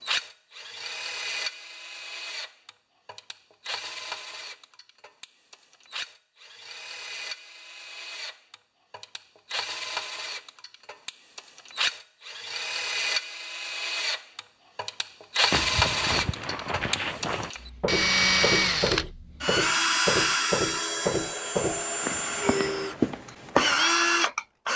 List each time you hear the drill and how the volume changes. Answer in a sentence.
You can hear the drill from 0.0 to 24.7 s, getting louder.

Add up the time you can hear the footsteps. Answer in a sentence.
The footsteps can be heard for 8 seconds in total.